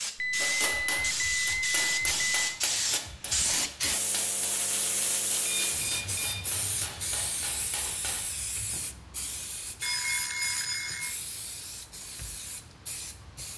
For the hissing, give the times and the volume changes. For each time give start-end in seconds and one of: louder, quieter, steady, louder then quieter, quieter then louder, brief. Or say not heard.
0.0-13.5 quieter.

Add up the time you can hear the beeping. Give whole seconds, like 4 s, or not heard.
5 s.